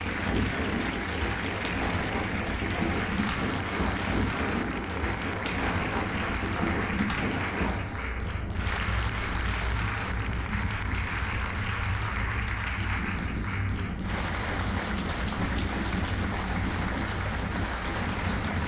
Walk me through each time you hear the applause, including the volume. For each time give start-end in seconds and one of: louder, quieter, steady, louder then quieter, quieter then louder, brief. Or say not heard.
0.0-18.6 steady.